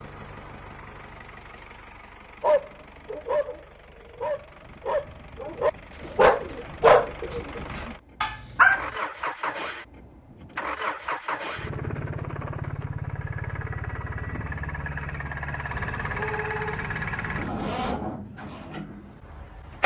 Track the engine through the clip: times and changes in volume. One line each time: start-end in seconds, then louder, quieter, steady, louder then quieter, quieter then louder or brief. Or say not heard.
0.0-19.8 louder.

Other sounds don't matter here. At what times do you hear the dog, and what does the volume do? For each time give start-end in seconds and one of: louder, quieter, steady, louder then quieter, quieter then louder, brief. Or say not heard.
2.4-8.8 louder then quieter.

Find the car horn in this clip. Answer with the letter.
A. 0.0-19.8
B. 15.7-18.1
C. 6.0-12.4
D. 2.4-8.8
B.